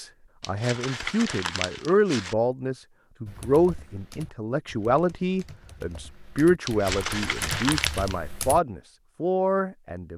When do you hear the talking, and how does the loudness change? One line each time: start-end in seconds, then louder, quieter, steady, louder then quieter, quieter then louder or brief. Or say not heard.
0.0-10.1 steady.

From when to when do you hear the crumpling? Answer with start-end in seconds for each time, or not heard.
0.4-2.4, 6.7-8.2.